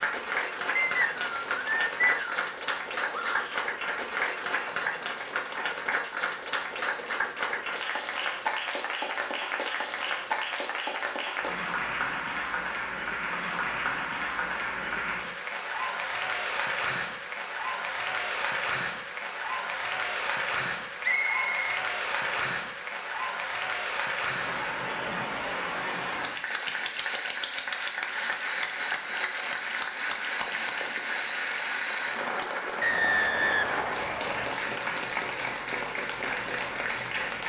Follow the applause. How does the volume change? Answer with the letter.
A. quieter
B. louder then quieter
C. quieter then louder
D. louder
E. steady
E.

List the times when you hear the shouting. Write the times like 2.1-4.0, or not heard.
3.0-3.6.